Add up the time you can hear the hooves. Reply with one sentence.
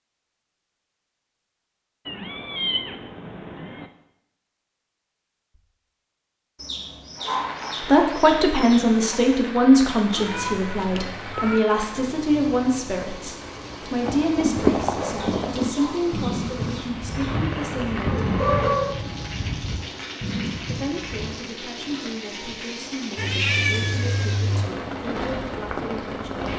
The hooves can be heard for 7 seconds in total.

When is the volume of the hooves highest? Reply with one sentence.
The loudest moment of the hooves is at 15 seconds.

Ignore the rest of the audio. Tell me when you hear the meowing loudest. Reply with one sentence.
The loudest moment of the meowing is at 24 seconds.